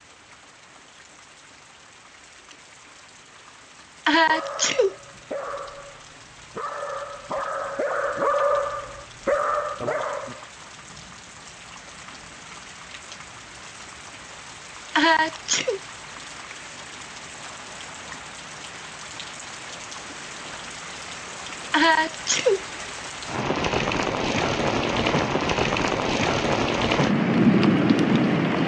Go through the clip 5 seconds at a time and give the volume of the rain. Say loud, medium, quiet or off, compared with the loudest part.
quiet, quiet, quiet, quiet, medium, loud.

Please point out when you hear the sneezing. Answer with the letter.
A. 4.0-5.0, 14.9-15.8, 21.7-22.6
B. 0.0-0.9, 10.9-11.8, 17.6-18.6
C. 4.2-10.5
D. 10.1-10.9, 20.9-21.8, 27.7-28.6
A.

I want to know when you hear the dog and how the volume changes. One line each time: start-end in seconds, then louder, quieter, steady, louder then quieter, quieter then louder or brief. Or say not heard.
4.2-10.5 louder.